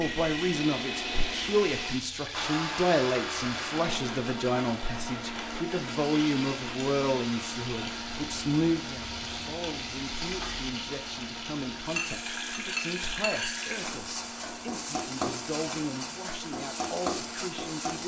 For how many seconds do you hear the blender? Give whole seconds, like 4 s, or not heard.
18 s.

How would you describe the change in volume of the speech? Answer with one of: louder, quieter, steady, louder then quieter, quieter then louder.
quieter.